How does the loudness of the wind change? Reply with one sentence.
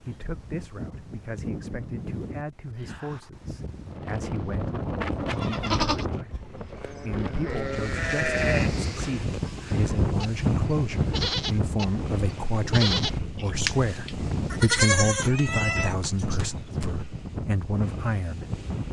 The volume of the wind goes up, then down.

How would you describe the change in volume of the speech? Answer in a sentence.
The loudness of the speech goes up.